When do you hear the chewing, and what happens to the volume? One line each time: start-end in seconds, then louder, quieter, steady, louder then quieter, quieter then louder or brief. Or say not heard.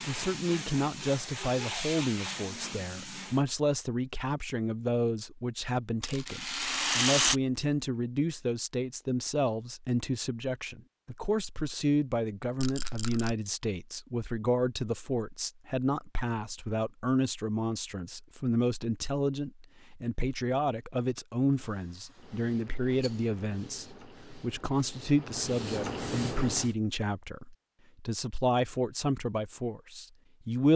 not heard.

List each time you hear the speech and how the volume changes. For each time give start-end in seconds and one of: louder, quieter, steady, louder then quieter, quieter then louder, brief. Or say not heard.
0.1-30.7 steady.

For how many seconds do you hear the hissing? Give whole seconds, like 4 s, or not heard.
9 s.